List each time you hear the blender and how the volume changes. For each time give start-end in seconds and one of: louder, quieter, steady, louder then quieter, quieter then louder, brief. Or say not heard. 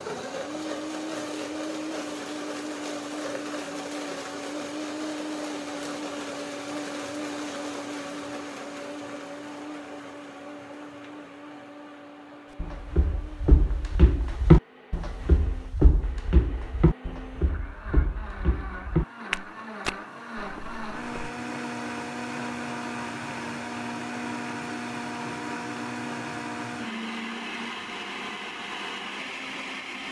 0.0-30.0 quieter then louder.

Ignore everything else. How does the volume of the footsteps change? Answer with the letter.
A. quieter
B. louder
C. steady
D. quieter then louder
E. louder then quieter
E.